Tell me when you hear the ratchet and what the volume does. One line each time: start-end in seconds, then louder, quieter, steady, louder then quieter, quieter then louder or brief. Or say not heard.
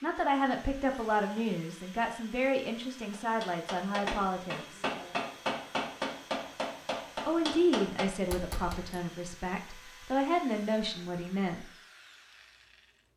not heard.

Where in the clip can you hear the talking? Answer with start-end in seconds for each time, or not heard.
0.0-4.8, 7.2-11.7.